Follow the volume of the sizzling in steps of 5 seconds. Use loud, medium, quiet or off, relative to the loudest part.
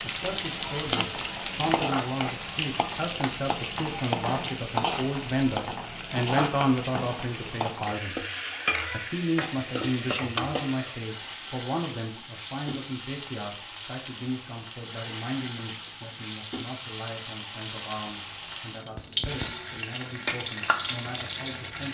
loud, loud, medium, loud, loud.